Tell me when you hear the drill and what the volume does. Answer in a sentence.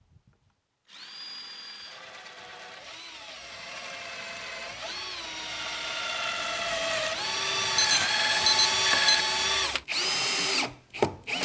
You can hear the drill from 0.0 to 11.4 s, getting louder.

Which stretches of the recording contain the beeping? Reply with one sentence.
You can hear the beeping from 7.8 to 9.2 s.